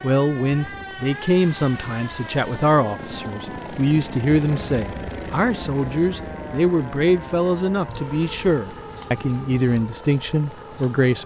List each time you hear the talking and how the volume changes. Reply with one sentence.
You can hear the talking from 0.0 to 11.2 s, at a steady volume.